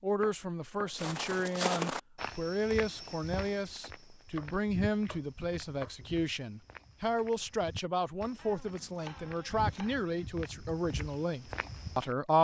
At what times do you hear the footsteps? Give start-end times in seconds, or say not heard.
0.9-12.2.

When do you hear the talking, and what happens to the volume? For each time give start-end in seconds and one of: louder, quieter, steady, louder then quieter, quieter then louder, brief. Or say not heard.
0.0-12.3 steady.